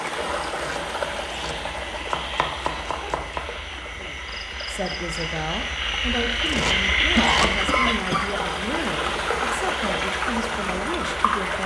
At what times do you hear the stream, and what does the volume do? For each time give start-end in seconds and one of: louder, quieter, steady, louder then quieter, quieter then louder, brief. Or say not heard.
0.0-11.6 quieter then louder.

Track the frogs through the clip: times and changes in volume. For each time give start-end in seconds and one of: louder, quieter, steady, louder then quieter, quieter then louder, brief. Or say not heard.
0.0-11.6 louder then quieter.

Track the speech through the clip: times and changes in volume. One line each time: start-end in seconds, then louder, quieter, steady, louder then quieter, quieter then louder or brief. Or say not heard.
4.0-11.6 steady.